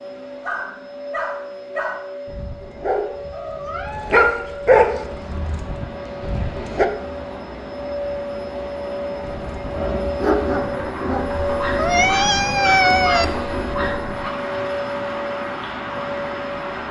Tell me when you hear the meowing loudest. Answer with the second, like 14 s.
13 s.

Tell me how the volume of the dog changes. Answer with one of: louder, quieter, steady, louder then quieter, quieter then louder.
louder then quieter.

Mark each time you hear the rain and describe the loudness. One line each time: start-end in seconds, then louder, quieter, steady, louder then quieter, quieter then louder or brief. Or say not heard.
4.8-16.8 louder.